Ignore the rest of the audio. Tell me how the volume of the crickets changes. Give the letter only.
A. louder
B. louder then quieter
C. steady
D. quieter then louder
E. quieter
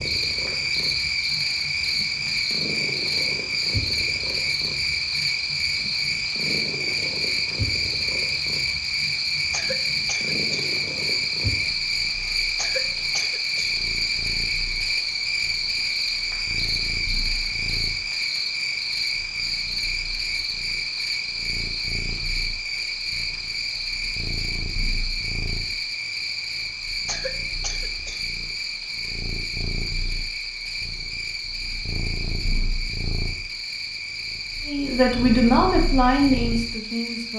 E.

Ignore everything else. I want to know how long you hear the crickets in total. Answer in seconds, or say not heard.
37 s.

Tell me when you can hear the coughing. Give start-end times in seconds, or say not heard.
9.5-10.7, 12.6-13.8, 27.1-28.2.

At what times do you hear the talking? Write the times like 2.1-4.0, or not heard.
34.6-37.3.